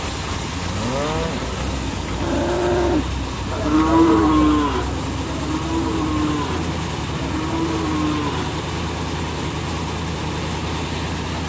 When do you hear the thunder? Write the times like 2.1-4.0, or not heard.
not heard.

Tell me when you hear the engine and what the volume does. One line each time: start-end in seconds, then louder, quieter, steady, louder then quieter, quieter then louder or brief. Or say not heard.
0.0-11.4 steady.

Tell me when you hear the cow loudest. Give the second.
4 s.